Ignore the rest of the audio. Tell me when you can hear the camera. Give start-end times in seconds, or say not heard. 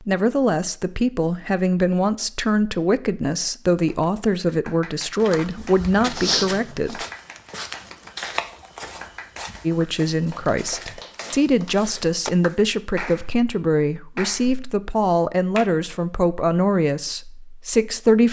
not heard.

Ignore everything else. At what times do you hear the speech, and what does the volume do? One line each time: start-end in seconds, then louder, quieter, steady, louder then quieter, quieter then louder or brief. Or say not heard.
0.1-7.0 steady
9.7-18.2 steady.